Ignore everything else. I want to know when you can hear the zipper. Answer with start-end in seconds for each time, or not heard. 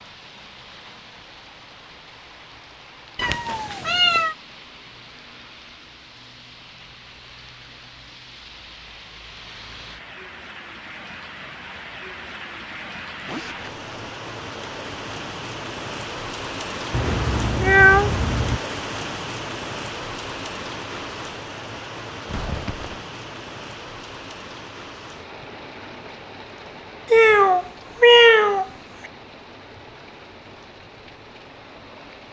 13.2-13.9, 22.2-23.1.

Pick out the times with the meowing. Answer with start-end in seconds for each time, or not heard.
3.1-4.3, 16.9-18.6, 27.1-29.1.